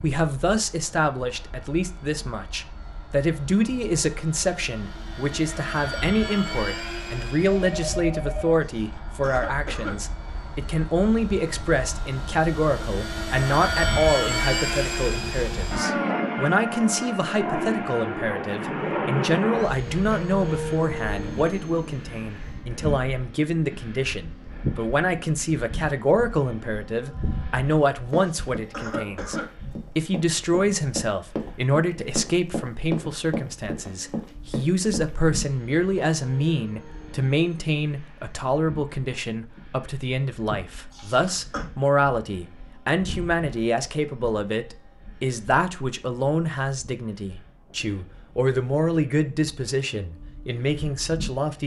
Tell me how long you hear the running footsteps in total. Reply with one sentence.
The running footsteps can be heard for 7 seconds in total.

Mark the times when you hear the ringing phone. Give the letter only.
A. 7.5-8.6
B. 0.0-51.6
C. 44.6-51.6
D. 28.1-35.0
A.